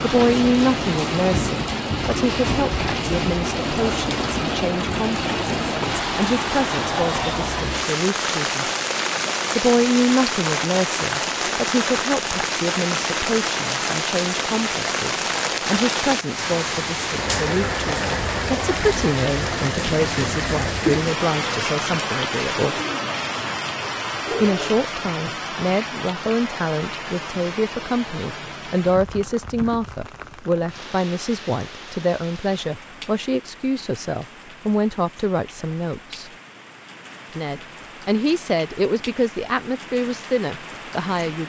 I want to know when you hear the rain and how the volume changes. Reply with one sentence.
You can hear the rain from 0.0 to 41.4 s, getting quieter.